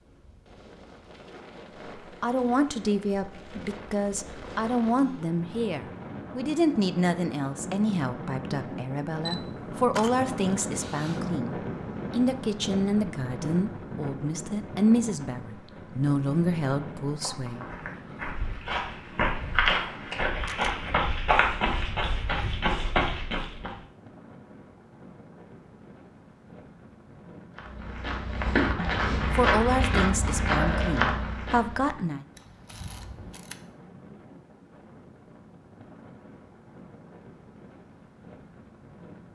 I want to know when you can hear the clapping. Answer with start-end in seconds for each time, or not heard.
not heard.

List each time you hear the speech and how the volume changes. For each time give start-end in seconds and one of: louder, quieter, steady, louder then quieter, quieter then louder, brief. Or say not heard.
2.2-17.6 steady
29.3-32.2 brief.